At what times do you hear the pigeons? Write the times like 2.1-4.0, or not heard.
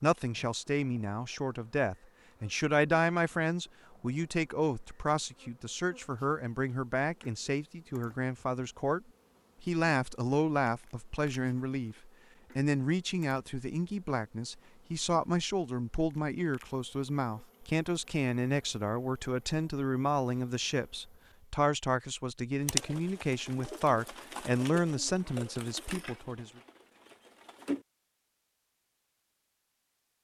22.6-27.9.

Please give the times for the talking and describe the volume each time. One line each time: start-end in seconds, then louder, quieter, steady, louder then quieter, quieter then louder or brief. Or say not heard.
0.0-26.6 steady.